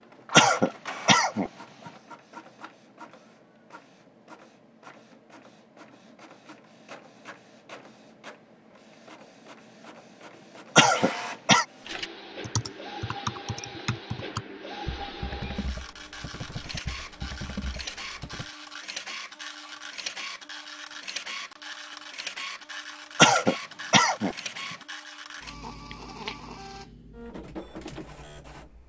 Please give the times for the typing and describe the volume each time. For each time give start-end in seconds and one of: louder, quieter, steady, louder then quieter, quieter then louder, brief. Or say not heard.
11.8-18.5 quieter.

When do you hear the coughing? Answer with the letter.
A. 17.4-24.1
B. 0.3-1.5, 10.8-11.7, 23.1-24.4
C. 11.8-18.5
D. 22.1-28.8
B.